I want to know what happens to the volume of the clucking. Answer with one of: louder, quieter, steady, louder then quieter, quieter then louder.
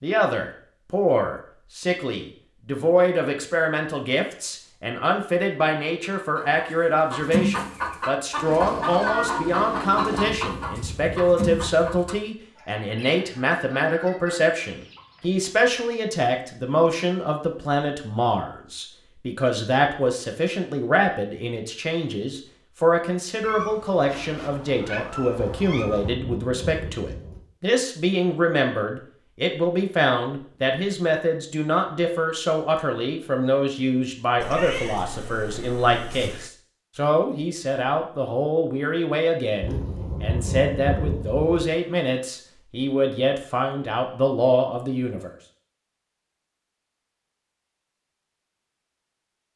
quieter.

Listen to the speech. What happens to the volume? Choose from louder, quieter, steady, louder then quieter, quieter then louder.
steady.